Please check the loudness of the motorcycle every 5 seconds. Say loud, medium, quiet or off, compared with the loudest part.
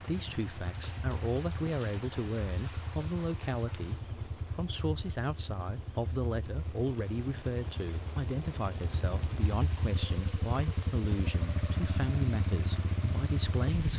medium, medium, loud.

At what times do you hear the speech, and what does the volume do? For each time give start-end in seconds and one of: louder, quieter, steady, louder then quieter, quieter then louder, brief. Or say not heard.
0.0-13.9 steady.